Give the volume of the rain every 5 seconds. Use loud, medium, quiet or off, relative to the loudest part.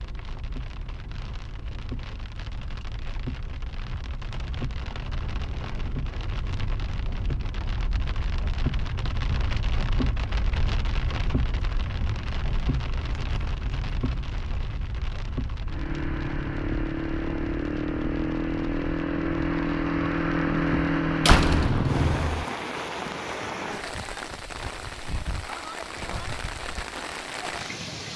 medium, loud, loud, medium, loud, loud.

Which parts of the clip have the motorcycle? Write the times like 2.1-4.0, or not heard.
15.7-22.4.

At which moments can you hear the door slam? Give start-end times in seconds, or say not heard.
21.2-22.4.